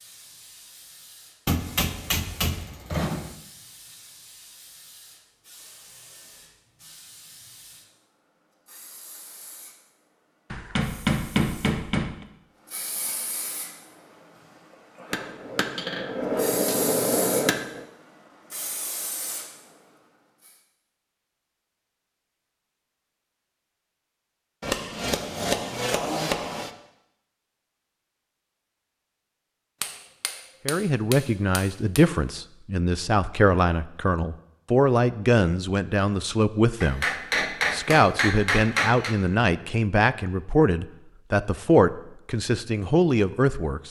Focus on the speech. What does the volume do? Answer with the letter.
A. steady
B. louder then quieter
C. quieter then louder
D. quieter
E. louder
A.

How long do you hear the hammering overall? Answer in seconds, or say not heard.
13 s.